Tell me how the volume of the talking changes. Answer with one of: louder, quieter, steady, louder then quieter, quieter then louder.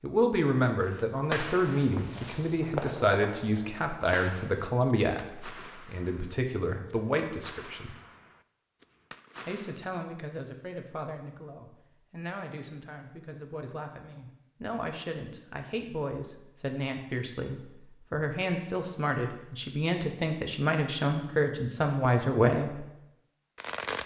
quieter then louder.